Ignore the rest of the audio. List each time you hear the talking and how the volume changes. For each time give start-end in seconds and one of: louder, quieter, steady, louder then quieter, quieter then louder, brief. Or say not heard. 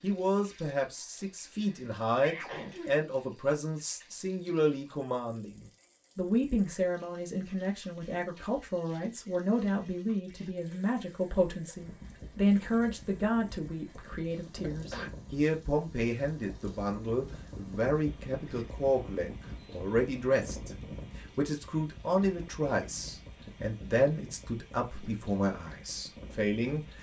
0.0-26.9 steady.